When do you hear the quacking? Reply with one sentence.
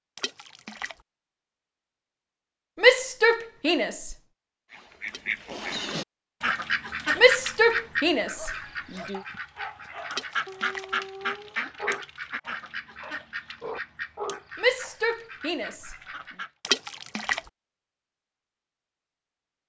You can hear the quacking from 4.7 to 16.5 s.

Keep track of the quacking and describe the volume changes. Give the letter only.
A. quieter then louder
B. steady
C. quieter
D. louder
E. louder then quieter
C.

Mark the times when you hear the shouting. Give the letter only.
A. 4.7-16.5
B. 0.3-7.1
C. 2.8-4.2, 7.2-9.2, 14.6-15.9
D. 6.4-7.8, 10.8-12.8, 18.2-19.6
C.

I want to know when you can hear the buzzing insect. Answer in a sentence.
The buzzing insect can't be heard in this clip.